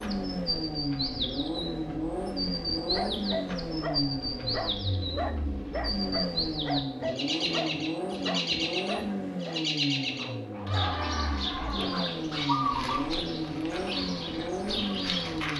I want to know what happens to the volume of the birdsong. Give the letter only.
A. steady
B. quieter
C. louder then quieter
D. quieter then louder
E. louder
A.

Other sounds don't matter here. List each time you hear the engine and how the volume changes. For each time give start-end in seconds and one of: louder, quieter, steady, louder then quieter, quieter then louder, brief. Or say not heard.
0.0-15.5 steady.